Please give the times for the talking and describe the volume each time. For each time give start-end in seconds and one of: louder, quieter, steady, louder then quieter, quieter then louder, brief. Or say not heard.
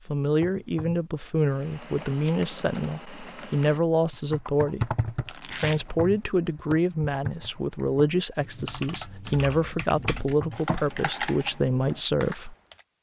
0.1-12.6 steady.